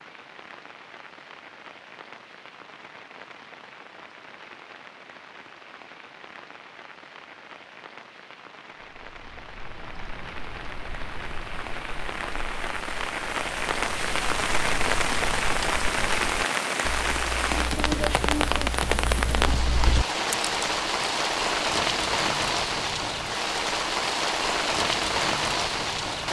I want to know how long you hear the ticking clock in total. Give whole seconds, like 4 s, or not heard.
not heard.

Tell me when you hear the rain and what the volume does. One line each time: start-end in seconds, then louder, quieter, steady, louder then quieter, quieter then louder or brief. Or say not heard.
0.0-26.2 louder.